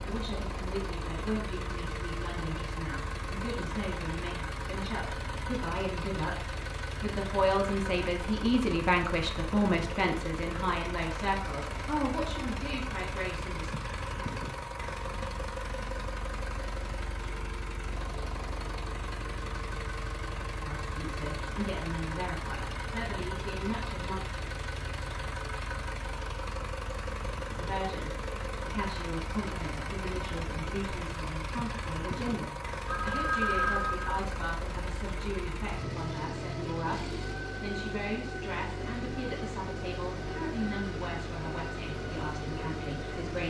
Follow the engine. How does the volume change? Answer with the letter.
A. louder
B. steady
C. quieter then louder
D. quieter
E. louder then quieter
B.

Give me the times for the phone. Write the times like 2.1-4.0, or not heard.
32.9-34.2.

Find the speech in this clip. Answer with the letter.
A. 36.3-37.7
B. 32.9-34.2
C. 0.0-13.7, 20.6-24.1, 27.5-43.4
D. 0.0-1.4
C.